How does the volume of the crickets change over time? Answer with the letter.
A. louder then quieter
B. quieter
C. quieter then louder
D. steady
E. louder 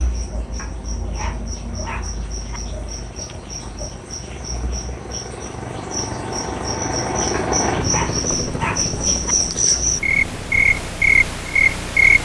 E.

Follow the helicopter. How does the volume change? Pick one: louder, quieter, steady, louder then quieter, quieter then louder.
louder then quieter.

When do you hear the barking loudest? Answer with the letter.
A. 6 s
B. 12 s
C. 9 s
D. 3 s
C.